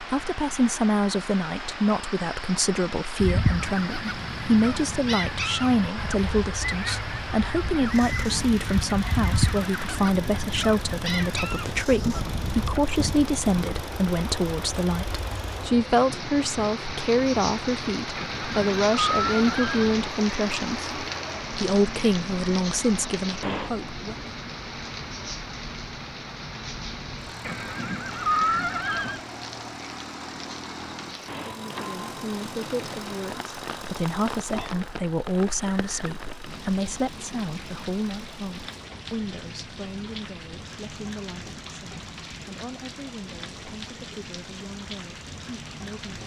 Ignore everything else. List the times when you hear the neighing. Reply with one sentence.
The neighing can be heard from 18.1 to 19.9 s and from 27.4 to 29.2 s.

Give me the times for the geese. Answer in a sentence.
You can hear the geese from 3.2 to 13.7 s.